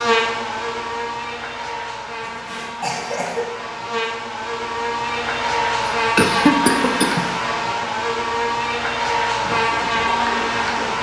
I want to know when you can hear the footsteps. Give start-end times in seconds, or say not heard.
not heard.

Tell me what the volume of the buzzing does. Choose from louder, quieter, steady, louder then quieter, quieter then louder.
louder.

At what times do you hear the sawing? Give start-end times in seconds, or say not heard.
9.4-10.9.